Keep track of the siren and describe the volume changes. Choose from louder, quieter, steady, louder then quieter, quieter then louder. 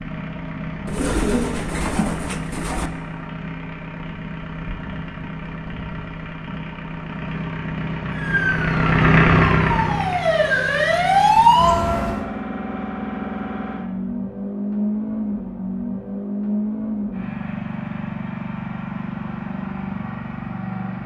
louder.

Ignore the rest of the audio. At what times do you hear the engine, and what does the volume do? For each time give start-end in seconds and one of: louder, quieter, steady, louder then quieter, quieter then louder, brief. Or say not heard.
0.0-21.0 louder then quieter.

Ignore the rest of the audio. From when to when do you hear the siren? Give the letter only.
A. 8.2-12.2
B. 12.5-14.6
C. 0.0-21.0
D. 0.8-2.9
A.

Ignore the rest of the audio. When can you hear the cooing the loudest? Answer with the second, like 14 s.
1 s.